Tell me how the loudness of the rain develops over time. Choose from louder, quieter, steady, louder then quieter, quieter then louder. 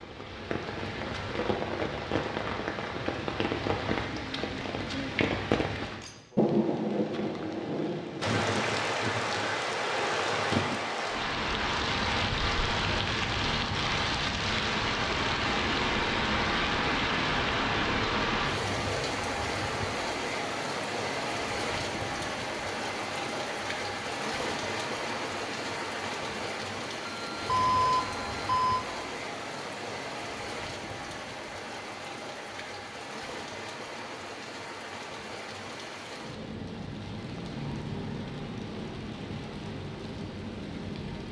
quieter.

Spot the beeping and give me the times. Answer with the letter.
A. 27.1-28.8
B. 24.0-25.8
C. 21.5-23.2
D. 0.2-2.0
A.